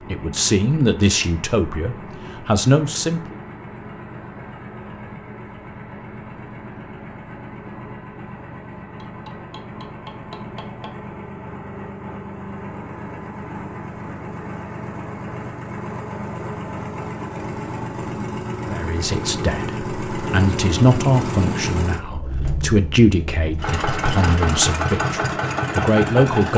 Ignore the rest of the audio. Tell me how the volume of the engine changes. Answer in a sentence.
The volume of the engine goes up.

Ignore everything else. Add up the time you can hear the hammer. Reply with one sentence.
The hammer can be heard for 2 seconds in total.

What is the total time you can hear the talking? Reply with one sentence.
You can hear the talking for 11 seconds altogether.